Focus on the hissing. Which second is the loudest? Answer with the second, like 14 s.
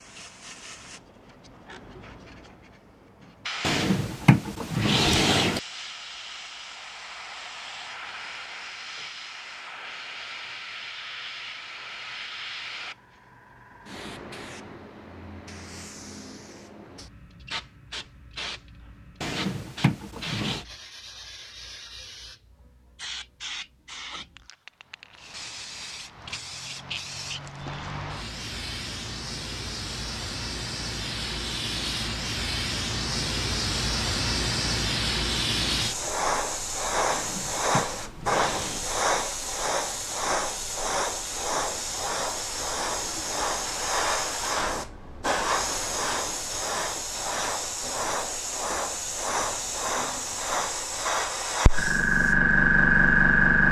53 s.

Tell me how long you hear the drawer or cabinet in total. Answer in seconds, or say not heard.
5 s.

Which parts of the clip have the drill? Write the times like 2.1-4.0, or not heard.
not heard.